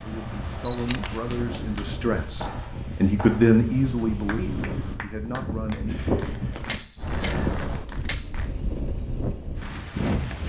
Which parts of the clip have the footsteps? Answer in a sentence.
The footsteps can't be heard in this clip.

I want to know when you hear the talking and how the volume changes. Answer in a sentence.
You can hear the talking from 0.0 to 6.0 s, getting louder then quieter.